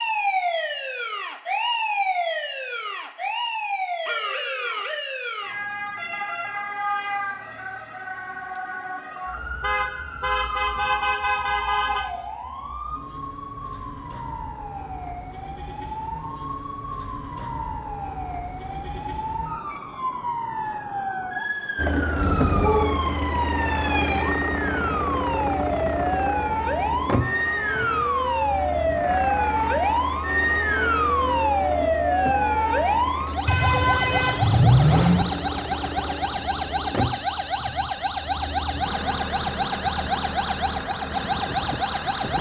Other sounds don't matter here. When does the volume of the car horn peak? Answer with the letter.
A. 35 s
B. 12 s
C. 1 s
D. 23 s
A.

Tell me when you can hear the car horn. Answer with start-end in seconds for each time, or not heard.
9.6-12.1, 22.1-23.0, 33.5-35.2.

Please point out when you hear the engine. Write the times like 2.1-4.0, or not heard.
21.8-42.3.